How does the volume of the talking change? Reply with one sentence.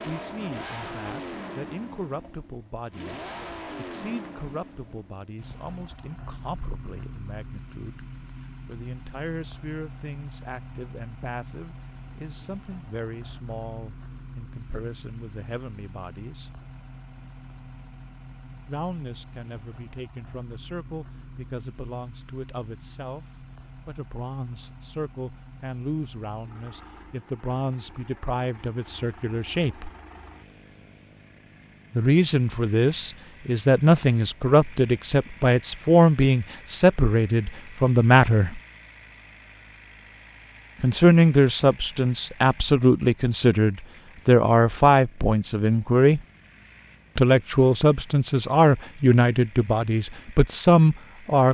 The volume of the talking goes up.